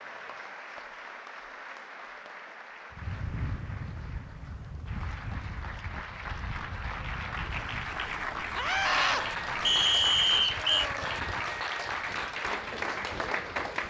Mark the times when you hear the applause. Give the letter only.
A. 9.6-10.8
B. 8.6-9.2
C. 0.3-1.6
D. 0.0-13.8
D.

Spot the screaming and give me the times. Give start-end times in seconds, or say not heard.
8.6-9.2.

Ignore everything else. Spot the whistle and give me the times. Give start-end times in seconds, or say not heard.
9.6-10.8.